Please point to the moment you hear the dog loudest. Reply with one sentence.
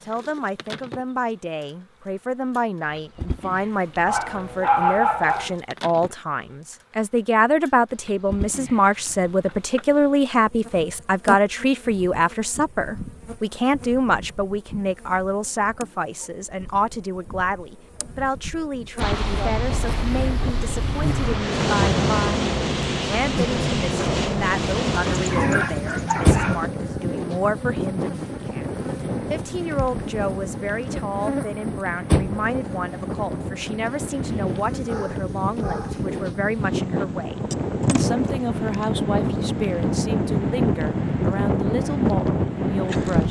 The volume of the dog peaks at 5 seconds.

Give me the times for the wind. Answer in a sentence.
The wind can be heard from 18.9 to 43.2 s.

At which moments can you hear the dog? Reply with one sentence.
The dog can be heard from 4.0 to 5.5 s, from 25.1 to 26.6 s and from 34.7 to 36.0 s.